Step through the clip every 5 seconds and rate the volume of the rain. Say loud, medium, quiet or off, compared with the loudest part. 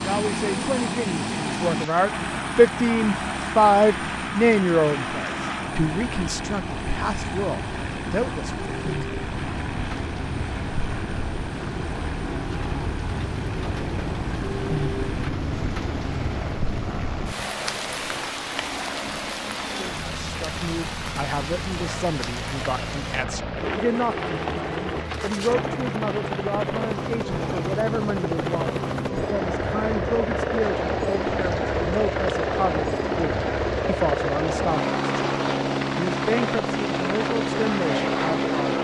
medium, loud, loud, loud, loud, medium, medium, off.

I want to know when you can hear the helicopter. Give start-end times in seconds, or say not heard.
0.0-38.7.